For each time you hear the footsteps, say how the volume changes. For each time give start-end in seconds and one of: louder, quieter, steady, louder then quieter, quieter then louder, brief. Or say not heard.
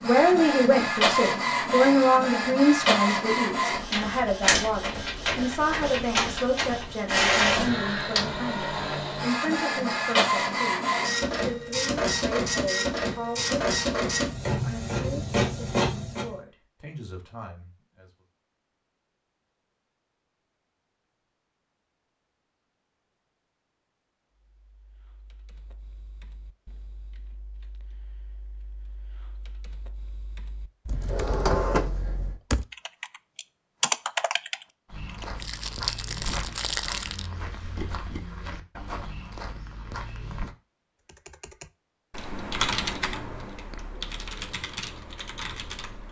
34.9-40.5 steady.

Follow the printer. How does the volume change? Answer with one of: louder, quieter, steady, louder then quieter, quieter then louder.
steady.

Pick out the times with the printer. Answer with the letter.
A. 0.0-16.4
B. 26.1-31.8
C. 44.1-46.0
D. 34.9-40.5
A.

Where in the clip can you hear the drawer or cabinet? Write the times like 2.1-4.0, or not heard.
30.9-32.4.